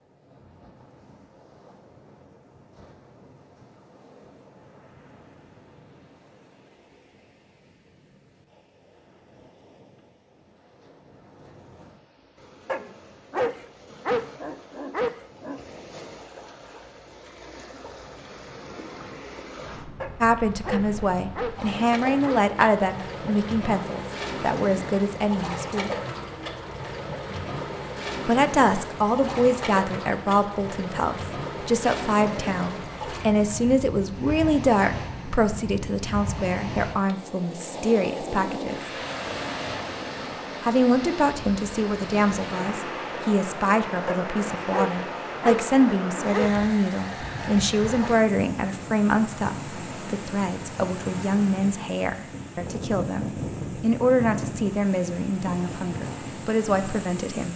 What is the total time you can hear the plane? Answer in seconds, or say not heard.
not heard.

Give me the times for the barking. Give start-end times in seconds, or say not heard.
12.7-15.6, 20.0-22.5, 44.0-46.5.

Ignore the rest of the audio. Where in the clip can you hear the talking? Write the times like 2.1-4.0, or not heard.
20.2-25.9, 28.2-39.0, 40.6-57.5.